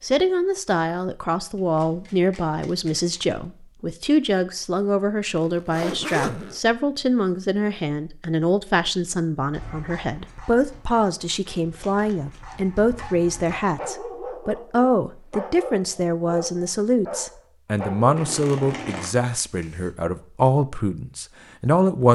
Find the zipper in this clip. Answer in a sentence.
The zipper can be heard from 5.3 to 6.6 s.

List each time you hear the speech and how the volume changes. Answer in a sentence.
The speech can be heard from 0.0 to 22.1 s, at a steady volume.